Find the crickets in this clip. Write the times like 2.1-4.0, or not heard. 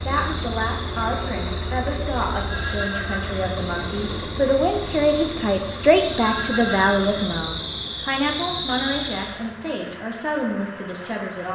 0.0-9.3.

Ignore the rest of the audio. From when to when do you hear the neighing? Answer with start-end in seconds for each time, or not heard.
2.4-3.5, 6.2-7.4.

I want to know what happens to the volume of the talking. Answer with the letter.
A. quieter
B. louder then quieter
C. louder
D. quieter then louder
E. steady
B.